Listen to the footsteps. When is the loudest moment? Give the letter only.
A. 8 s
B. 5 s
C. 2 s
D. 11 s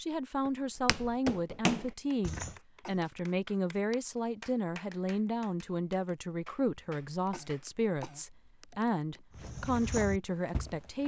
C.